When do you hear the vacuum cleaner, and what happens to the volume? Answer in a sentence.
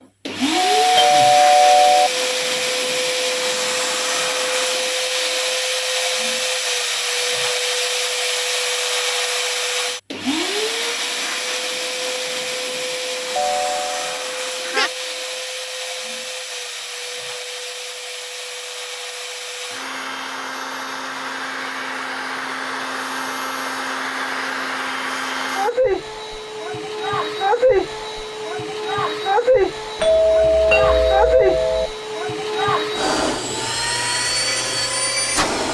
You can hear the vacuum cleaner from 0.2 to 35.6 s, getting quieter then louder.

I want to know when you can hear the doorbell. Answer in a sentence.
You can hear the doorbell from 0.5 to 2.1 s, from 13.3 to 14.9 s and from 29.9 to 31.9 s.